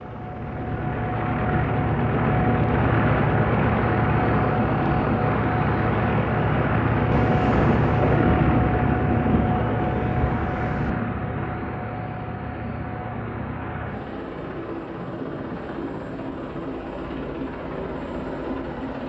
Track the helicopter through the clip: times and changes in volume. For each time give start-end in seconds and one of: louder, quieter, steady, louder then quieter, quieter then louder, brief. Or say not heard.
0.0-19.0 quieter.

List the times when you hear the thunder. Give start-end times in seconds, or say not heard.
7.1-10.9.